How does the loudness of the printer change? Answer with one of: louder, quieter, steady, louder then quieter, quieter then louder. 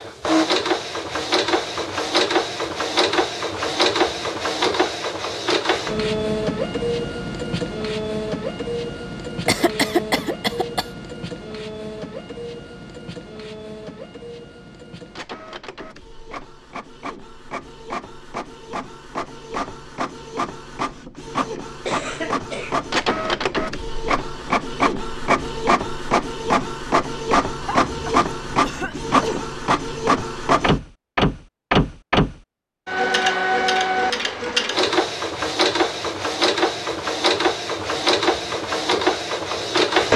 quieter then louder.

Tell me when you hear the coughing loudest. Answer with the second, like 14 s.
10 s.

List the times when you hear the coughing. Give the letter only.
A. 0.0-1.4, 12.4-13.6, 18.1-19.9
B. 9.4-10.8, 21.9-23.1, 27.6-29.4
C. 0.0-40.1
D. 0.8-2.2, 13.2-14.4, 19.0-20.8
B.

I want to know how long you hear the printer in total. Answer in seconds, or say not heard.
40 s.